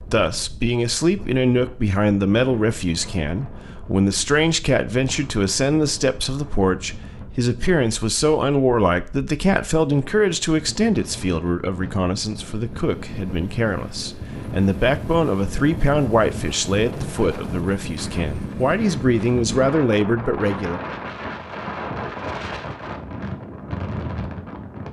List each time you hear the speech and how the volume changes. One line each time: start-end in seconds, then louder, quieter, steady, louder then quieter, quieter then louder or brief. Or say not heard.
0.1-20.8 steady.